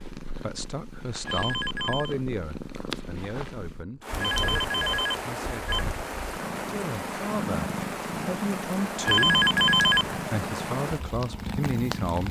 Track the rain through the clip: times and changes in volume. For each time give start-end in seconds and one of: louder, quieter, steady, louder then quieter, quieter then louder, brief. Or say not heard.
4.0-12.2 steady.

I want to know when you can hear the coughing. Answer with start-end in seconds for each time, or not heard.
not heard.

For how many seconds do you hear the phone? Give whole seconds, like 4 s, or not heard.
4 s.